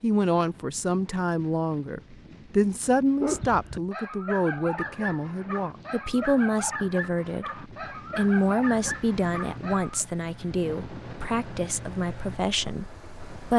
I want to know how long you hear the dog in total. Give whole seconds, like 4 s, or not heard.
7 s.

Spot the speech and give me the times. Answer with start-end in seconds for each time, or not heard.
0.0-13.5.